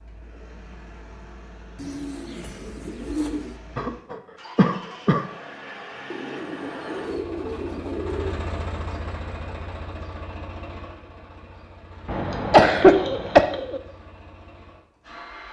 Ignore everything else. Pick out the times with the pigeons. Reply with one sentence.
The pigeons can be heard from 1.8 to 3.5 s, from 6.1 to 8.4 s and from 12.1 to 13.8 s.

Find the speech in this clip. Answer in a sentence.
The speech can't be heard in this clip.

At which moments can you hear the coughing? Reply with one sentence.
You can hear the coughing from 3.8 to 5.2 s and from 12.1 to 13.4 s.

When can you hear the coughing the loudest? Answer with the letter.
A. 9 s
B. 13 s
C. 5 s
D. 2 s
B.